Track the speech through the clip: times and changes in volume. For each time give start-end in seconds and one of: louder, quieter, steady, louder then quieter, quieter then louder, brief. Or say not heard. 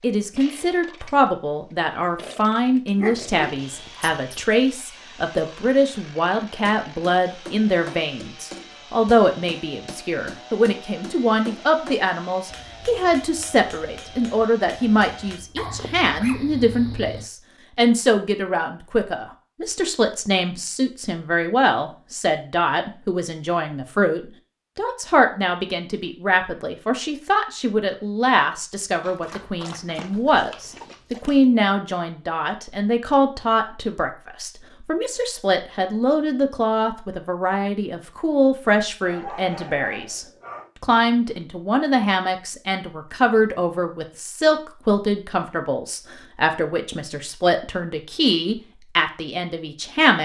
0.0-50.2 steady.